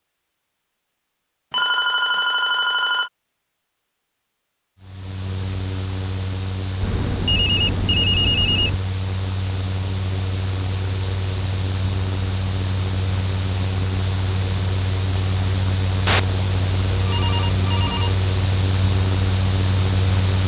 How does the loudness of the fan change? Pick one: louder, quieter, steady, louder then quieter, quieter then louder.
louder.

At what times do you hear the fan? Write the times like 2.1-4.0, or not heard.
4.8-20.4.